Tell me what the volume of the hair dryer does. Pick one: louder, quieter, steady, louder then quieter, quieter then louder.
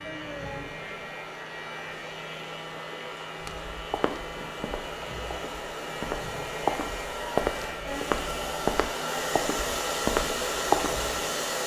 louder.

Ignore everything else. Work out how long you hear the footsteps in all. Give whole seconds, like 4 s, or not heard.
8 s.